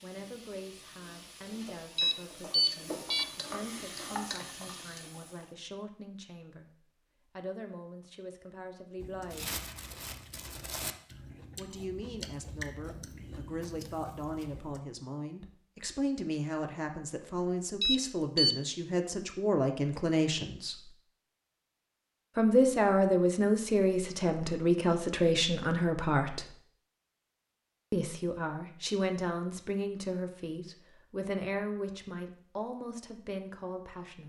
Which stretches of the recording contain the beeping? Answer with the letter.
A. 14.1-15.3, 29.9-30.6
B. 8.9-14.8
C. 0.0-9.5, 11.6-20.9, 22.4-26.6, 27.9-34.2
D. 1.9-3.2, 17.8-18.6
D.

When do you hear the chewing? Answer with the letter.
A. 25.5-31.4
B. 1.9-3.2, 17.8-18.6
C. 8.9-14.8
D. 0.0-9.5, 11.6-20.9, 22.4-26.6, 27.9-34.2
C.